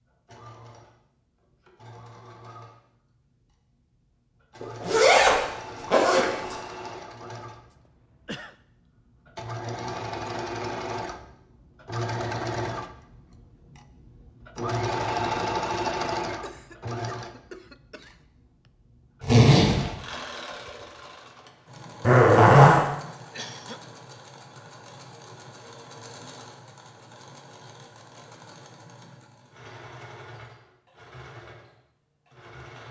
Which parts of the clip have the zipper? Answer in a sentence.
You can hear the zipper from 4.6 to 6.5 s, from 19.2 to 19.9 s and from 22.0 to 22.9 s.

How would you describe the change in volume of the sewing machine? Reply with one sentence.
The volume of the sewing machine goes up, then down.